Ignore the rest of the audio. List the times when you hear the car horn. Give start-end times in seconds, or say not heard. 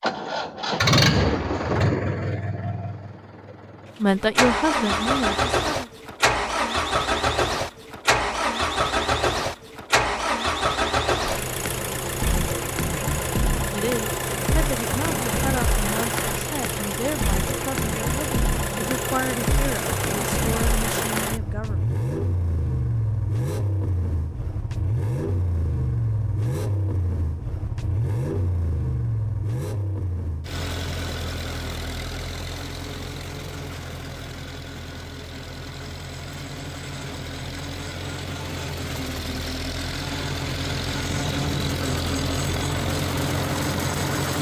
not heard.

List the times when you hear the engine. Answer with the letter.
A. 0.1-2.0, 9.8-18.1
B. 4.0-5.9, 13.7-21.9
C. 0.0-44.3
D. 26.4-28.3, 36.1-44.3
C.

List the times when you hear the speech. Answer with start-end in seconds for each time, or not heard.
4.0-5.9, 13.7-21.9.